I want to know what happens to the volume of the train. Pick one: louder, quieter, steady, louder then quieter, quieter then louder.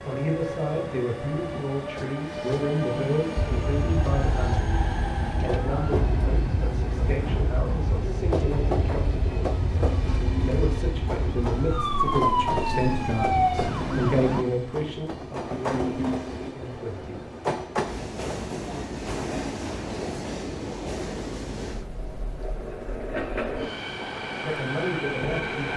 steady.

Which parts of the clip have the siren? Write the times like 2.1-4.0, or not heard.
3.4-14.4.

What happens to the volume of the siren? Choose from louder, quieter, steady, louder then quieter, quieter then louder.
louder.